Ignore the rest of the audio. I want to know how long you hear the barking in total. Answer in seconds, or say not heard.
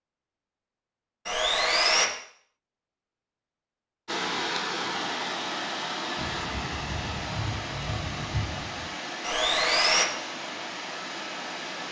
not heard.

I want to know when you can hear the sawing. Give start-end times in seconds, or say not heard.
1.2-2.0, 9.2-10.1.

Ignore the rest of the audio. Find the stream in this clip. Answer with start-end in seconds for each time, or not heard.
4.0-11.8.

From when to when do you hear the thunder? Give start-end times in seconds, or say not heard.
6.2-8.9.